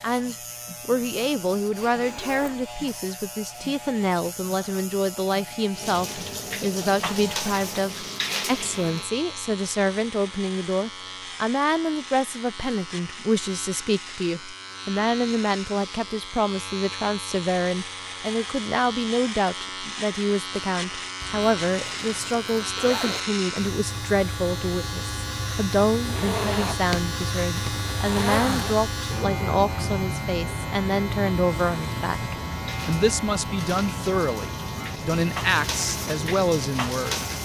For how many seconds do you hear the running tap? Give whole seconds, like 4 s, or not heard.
9 s.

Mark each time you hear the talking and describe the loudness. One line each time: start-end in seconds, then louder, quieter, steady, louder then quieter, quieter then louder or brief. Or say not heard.
0.0-37.2 steady.